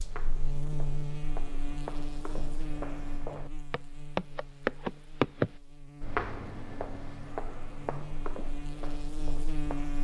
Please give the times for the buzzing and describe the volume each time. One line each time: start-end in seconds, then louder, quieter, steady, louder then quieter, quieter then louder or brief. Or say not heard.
0.0-9.9 quieter then louder.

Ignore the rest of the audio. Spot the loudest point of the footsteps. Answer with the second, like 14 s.
5 s.